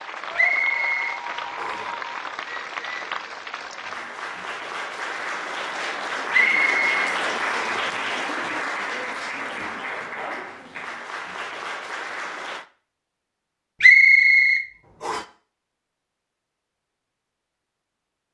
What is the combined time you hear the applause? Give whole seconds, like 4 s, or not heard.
13 s.